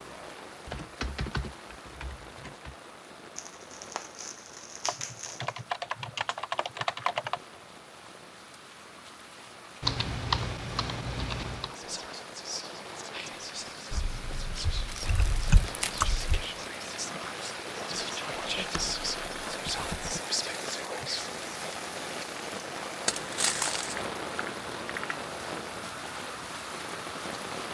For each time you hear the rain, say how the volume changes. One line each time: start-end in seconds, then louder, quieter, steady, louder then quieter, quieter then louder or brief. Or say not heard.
0.0-27.6 louder.